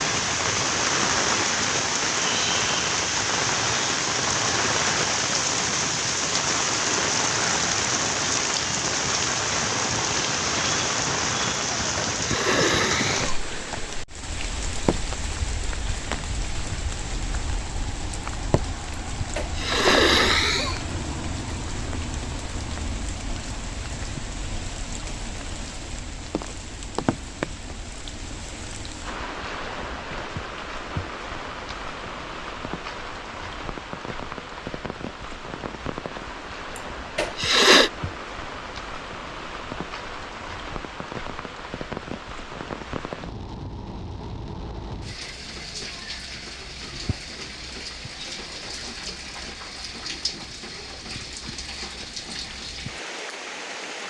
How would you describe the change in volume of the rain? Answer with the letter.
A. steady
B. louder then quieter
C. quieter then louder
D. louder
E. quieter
E.